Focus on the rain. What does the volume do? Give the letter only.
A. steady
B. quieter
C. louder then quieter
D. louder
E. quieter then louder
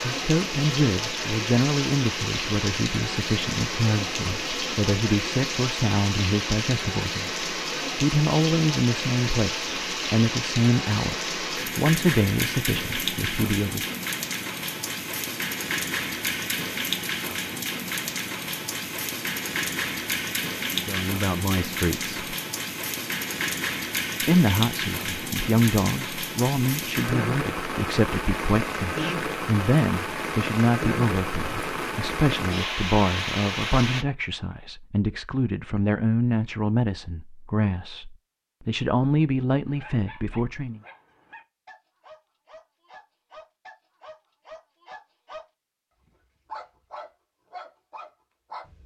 A.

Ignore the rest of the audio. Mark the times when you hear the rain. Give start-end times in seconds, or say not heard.
0.0-34.0.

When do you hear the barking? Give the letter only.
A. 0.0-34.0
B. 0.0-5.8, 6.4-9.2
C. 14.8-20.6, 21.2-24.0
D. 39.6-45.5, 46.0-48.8
D.